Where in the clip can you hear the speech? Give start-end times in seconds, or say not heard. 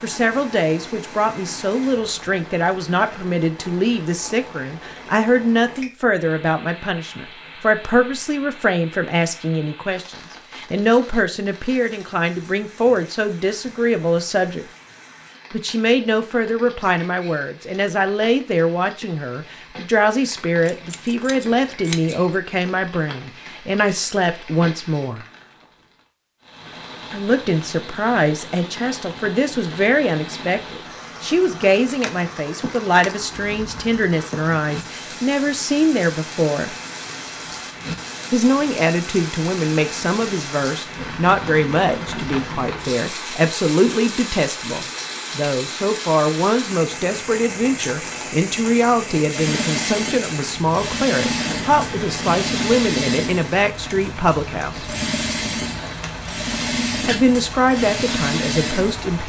0.0-14.7, 15.5-25.2, 27.1-36.7, 38.3-55.0, 57.0-59.2.